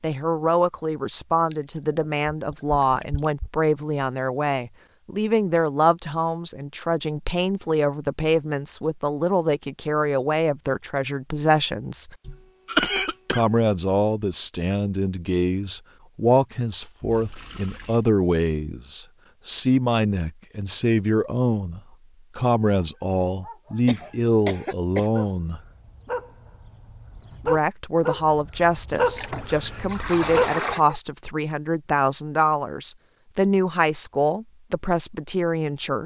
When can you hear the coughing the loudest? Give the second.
13 s.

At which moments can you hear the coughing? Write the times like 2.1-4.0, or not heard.
12.2-13.4, 23.9-25.1.